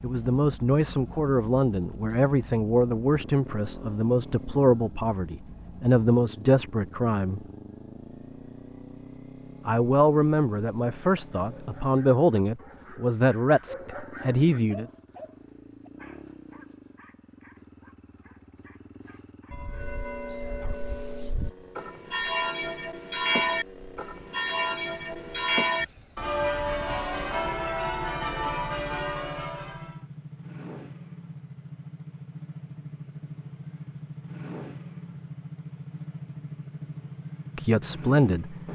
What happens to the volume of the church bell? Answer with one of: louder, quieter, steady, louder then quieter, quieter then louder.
louder.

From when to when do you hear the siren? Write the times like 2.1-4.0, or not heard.
not heard.